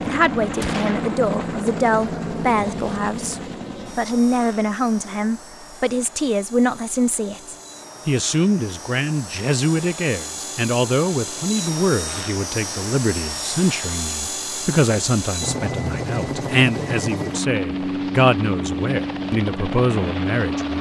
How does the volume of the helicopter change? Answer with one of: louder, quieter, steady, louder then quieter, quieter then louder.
quieter then louder.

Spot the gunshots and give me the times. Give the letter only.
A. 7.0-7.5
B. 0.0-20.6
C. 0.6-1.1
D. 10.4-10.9
C.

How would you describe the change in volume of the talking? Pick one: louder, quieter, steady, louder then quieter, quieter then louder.
steady.